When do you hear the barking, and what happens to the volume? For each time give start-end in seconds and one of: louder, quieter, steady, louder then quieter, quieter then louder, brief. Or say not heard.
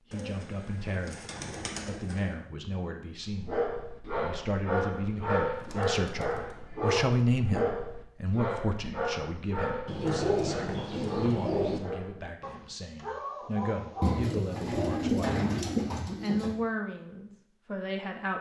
3.2-14.3 quieter.